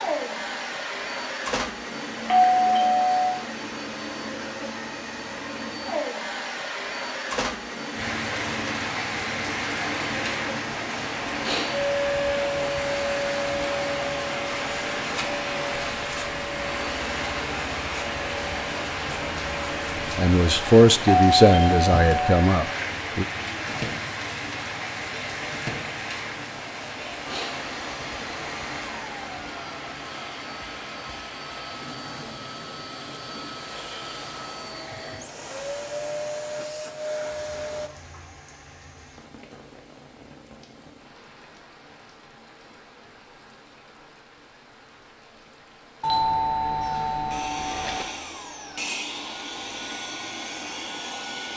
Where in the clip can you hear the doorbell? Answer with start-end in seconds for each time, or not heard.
2.2-3.5, 21.1-22.4, 46.0-48.0.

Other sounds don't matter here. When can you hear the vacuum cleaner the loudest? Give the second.
12 s.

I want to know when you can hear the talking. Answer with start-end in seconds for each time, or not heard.
20.1-23.2.